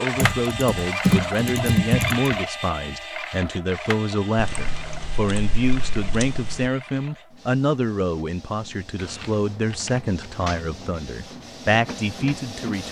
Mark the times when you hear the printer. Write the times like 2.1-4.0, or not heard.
0.0-12.8.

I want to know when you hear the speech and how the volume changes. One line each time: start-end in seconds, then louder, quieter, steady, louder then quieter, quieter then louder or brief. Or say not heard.
0.0-12.8 steady.